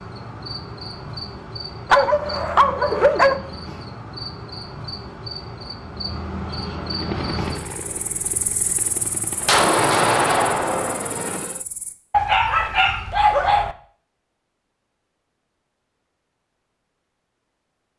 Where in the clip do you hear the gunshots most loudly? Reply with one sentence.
The volume of the gunshots peaks at 10 seconds.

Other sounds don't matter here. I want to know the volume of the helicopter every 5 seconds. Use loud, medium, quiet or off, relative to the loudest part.
off, medium, loud, off.